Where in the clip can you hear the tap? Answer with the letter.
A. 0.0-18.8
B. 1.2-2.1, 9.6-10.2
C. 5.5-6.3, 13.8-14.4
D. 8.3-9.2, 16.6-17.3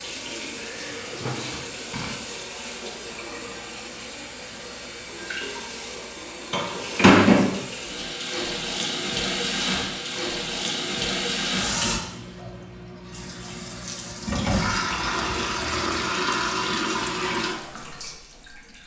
A.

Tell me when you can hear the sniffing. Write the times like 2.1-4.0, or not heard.
1.2-2.1, 9.6-10.2.